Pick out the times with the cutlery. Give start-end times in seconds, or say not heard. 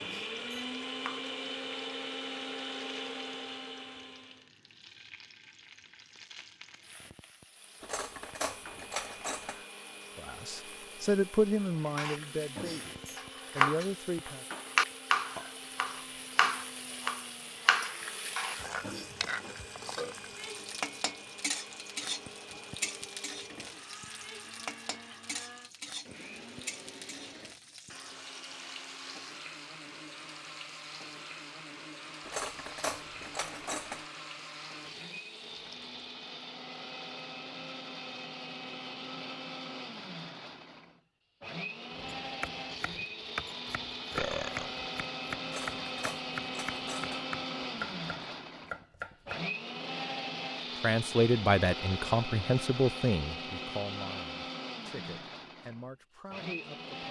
7.8-9.6, 32.2-34.0, 45.5-47.2.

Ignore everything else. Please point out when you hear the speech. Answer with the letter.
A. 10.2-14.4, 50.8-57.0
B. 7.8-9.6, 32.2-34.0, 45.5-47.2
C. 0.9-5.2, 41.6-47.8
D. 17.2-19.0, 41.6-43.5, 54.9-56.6
A.